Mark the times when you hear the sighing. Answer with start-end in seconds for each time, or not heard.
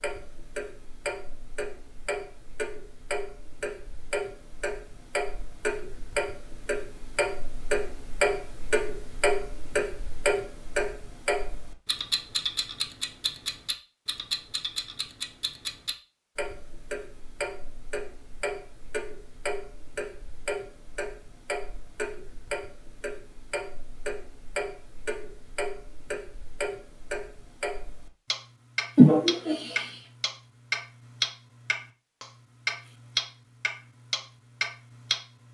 28.9-29.9.